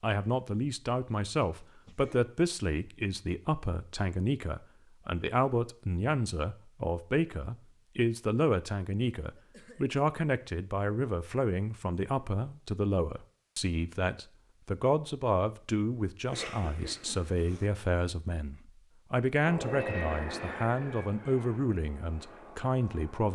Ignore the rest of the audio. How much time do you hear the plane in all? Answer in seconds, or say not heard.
4 s.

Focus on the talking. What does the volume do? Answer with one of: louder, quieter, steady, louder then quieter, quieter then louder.
steady.